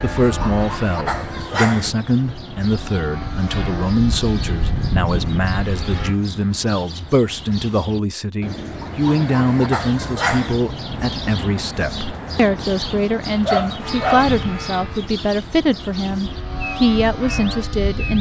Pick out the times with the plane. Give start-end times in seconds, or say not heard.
0.0-6.2, 13.8-18.1.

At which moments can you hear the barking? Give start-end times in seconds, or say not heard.
0.3-1.9, 8.8-10.6, 13.4-14.3.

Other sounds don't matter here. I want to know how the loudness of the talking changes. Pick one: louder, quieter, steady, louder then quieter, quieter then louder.
steady.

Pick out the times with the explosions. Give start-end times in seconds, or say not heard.
not heard.